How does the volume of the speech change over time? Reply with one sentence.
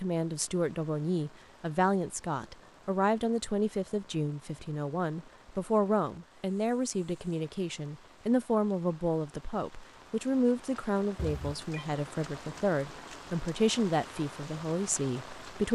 The volume of the speech stays about the same.